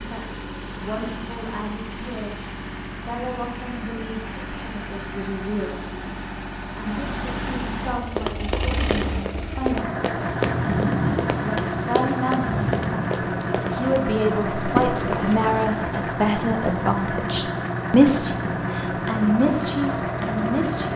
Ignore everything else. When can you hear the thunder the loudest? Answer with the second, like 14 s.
11 s.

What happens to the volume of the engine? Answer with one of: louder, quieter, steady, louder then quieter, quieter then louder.
louder.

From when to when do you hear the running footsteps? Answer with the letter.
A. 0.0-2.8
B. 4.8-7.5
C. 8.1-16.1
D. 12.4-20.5
C.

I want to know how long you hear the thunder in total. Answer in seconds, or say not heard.
3 s.